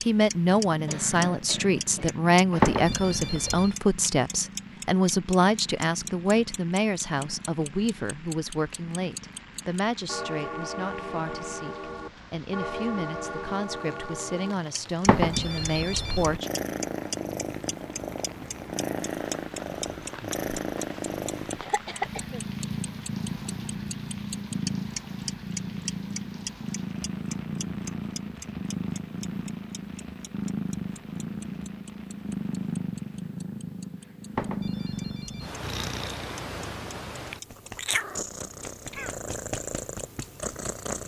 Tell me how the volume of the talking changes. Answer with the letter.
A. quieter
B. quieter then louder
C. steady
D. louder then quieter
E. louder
A.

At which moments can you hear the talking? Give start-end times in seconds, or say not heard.
0.0-16.5.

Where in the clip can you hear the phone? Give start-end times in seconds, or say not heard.
2.6-3.8, 15.1-16.4, 34.4-35.6.